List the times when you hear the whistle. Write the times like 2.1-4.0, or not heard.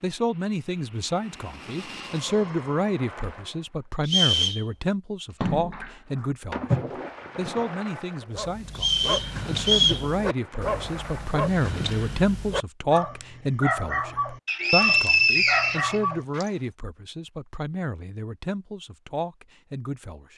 4.0-4.7, 8.8-10.1, 14.4-16.4.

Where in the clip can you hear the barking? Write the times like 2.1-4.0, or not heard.
8.2-16.5.